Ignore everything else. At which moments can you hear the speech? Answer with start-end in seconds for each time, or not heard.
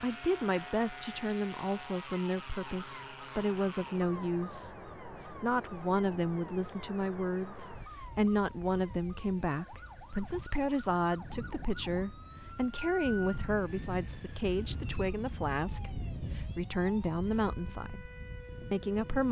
0.0-4.8, 5.4-18.1, 18.7-19.2.